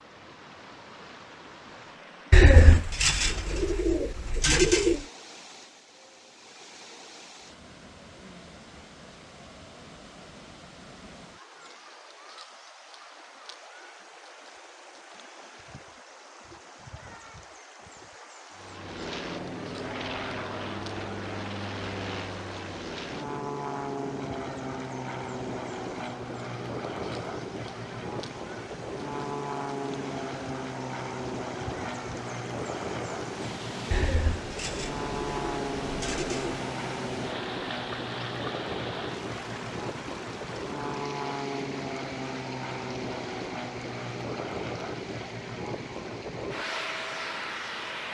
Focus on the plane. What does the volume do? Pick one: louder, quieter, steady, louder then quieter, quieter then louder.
steady.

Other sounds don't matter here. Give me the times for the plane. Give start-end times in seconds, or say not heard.
18.5-48.1.